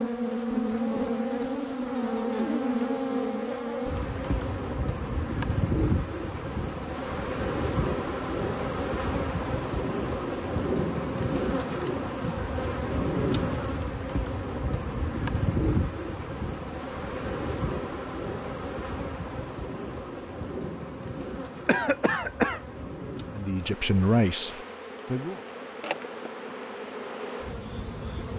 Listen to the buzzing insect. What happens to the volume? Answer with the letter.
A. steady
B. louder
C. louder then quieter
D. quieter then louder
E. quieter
E.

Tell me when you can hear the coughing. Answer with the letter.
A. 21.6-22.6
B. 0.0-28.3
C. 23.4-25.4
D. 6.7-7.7
A.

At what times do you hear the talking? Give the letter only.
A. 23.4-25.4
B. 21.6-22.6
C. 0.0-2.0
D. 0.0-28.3
A.